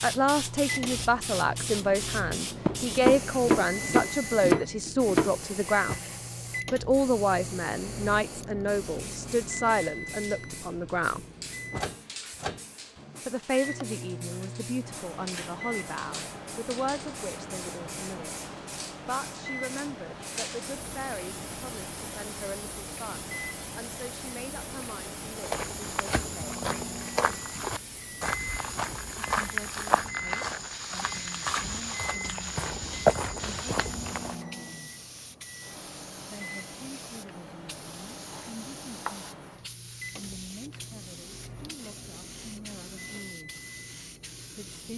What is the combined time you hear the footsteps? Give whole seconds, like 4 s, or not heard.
9 s.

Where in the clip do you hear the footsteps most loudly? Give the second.
33 s.